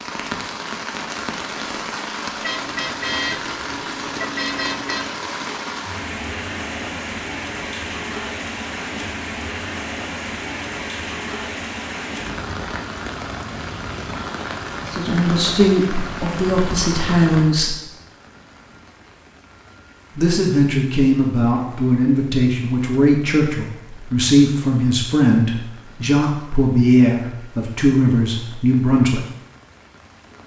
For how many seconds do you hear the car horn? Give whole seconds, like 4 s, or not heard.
3 s.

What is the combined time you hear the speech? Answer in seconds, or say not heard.
12 s.